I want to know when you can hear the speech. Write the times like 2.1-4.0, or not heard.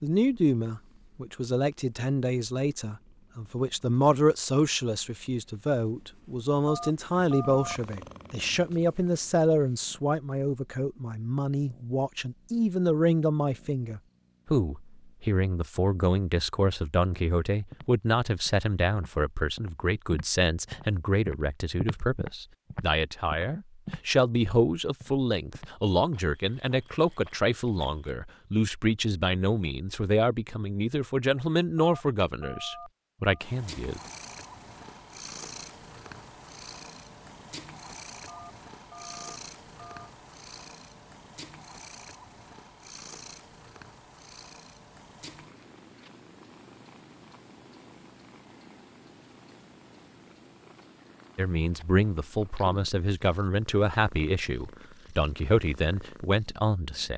0.0-34.0, 51.4-57.1.